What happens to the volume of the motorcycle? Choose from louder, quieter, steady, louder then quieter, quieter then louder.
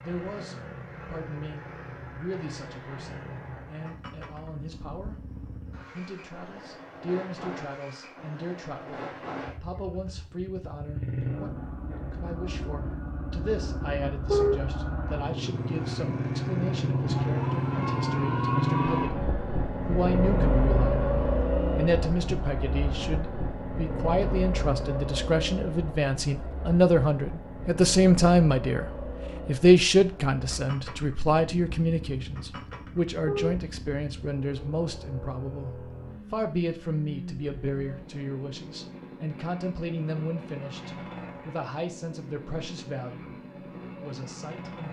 louder then quieter.